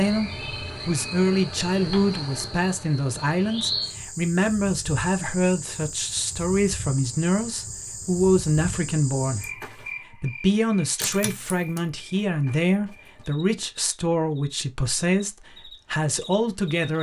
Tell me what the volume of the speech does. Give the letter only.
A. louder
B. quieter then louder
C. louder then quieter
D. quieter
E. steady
E.